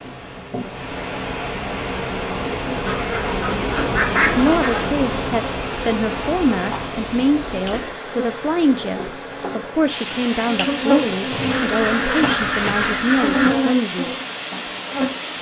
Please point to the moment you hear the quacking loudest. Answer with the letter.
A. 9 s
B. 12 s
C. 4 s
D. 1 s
C.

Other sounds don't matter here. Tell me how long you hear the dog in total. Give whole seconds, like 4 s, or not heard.
not heard.